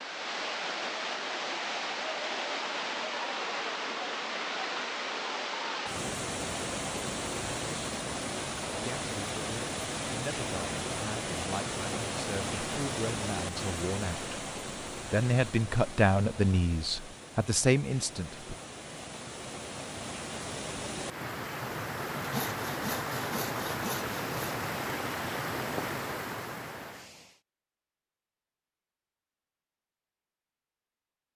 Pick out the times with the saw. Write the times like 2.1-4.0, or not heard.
22.2-24.6.